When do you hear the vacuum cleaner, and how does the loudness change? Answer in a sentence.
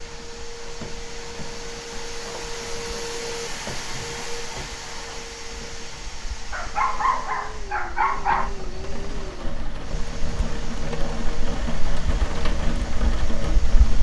You can hear the vacuum cleaner from 0.0 to 13.9 s, getting quieter.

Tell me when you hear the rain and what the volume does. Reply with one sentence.
The rain can be heard from 0.0 to 13.9 s, getting louder.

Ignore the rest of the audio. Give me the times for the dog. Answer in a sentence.
The dog can be heard from 6.5 to 8.6 s.